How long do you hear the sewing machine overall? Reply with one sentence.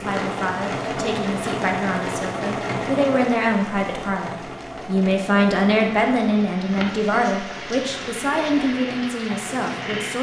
The sewing machine can be heard for 10 seconds in total.